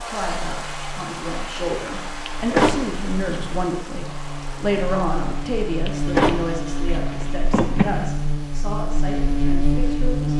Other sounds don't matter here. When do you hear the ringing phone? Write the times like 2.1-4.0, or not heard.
not heard.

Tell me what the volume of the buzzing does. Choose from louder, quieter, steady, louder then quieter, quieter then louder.
louder.